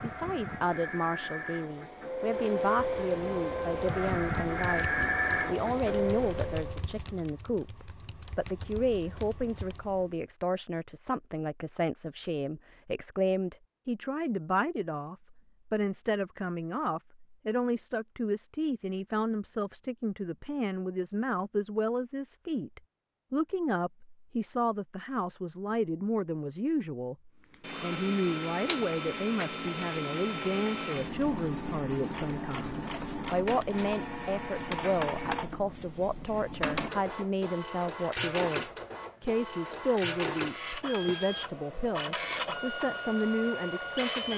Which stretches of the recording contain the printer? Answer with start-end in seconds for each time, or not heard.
0.0-6.8, 27.5-44.3.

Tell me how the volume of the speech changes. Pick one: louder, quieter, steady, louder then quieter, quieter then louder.
steady.